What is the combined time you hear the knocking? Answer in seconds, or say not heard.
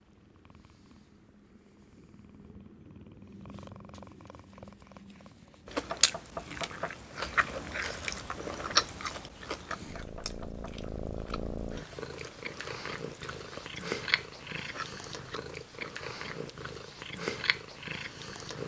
2 s.